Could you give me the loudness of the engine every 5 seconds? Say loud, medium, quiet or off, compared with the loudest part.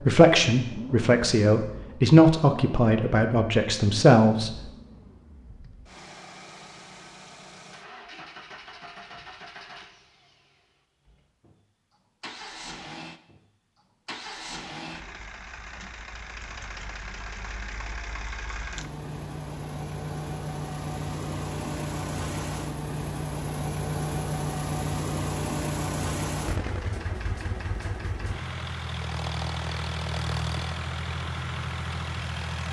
medium, quiet, medium, medium, loud, loud, loud.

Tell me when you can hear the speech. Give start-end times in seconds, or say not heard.
0.1-4.5.